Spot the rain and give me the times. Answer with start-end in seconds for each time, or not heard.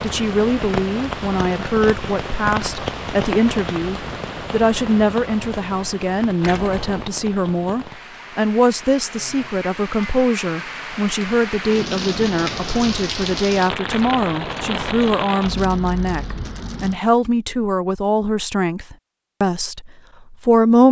0.0-17.0.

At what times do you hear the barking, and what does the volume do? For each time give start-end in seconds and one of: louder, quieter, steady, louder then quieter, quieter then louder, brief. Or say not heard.
not heard.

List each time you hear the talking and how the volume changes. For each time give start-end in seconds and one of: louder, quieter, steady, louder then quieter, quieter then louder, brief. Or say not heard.
0.0-20.8 steady.